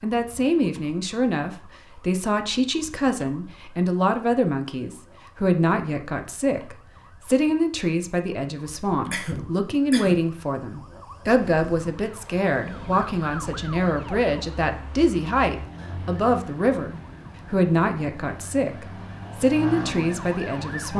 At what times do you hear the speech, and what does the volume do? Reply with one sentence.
The speech can be heard from 0.0 to 20.9 s, at a steady volume.